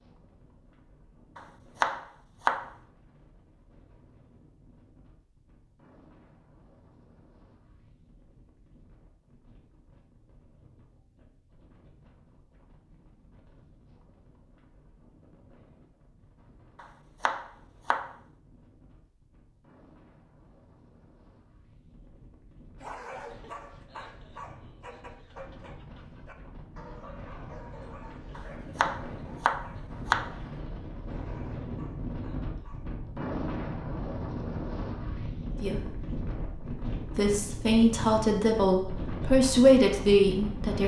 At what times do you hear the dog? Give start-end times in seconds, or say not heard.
22.8-32.9.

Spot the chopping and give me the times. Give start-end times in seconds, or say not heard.
1.4-2.7, 16.8-18.1, 28.4-30.4.